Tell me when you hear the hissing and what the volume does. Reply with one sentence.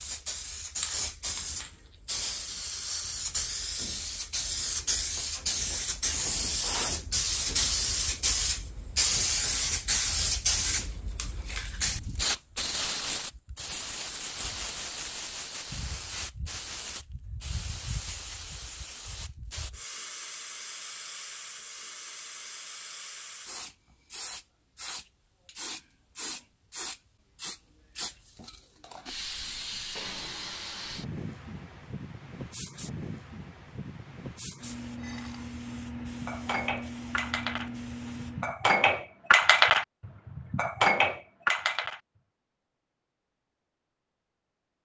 You can hear the hissing from 0.0 to 38.5 s, getting quieter.